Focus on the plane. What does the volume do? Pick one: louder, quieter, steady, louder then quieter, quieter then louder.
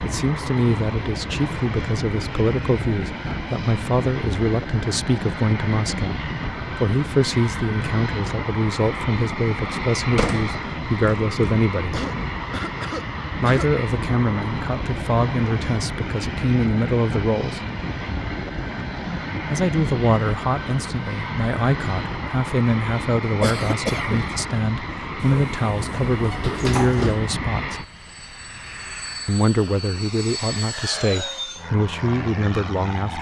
steady.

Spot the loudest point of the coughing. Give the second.
24 s.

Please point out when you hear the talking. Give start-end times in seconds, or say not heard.
0.0-12.0, 13.4-17.6, 19.5-27.9, 29.2-33.1.